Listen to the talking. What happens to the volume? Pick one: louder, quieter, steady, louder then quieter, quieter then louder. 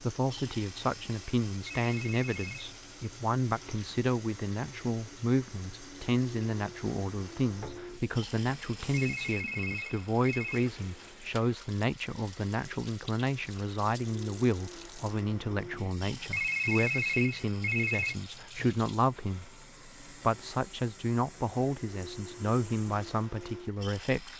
steady.